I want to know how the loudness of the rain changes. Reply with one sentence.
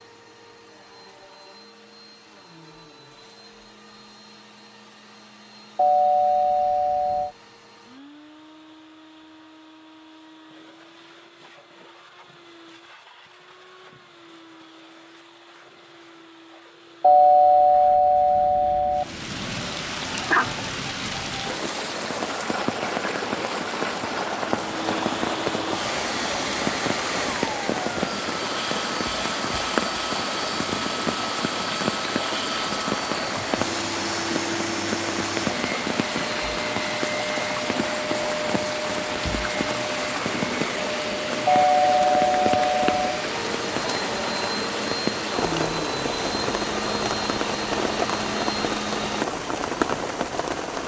The loudness of the rain stays about the same.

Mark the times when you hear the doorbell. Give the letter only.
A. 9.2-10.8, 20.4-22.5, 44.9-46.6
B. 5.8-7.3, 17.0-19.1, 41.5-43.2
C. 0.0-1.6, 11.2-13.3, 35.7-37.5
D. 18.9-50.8
B.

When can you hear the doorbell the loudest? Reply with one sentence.
The volume of the doorbell peaks at 17 seconds.